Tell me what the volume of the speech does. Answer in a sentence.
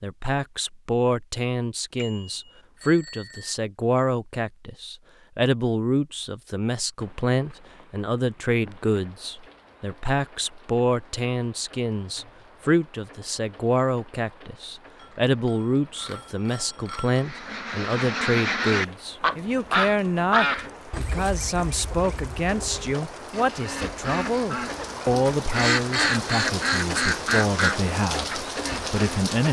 The volume of the speech stays about the same.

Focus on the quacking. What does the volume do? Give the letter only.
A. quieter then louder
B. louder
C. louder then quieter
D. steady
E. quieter
A.